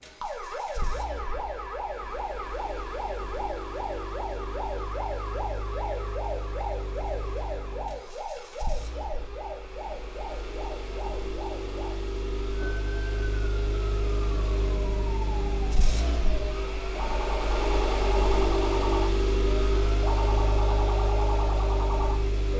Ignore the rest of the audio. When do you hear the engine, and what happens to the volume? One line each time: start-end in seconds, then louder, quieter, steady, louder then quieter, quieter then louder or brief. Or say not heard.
0.0-22.5 louder.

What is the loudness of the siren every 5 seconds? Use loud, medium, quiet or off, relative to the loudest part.
loud, loud, medium, loud, loud.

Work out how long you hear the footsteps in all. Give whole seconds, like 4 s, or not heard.
not heard.